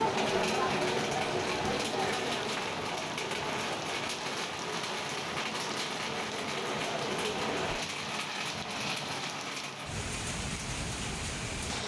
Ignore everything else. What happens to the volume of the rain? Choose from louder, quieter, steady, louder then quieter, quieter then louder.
steady.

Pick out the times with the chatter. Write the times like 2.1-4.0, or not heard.
0.0-7.8.